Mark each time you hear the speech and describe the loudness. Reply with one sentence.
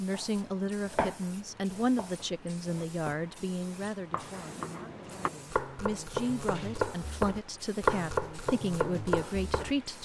You can hear the speech from 0.0 to 9.9 s, getting quieter then louder.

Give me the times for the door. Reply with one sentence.
The door can be heard from 4.2 to 5.5 s.